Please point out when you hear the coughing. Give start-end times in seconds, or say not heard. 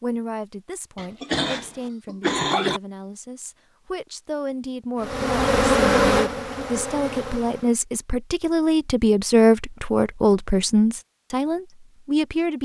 0.9-2.8.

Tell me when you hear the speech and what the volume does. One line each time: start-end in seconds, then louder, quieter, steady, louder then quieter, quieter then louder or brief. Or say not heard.
0.0-12.6 louder.